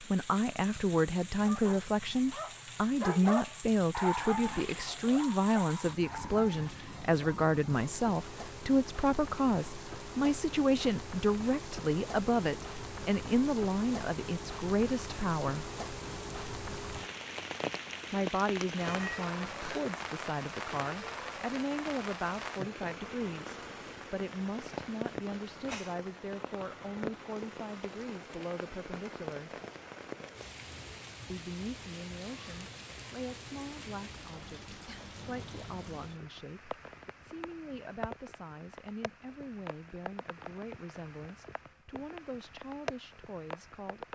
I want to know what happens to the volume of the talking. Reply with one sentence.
The volume of the talking goes down.